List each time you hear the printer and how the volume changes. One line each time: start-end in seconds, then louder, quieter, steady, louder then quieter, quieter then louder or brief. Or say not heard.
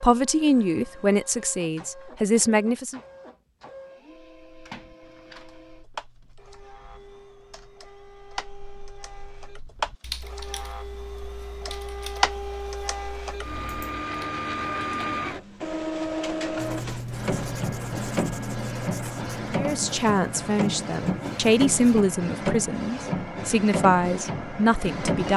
0.1-25.3 louder.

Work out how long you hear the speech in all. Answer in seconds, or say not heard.
9 s.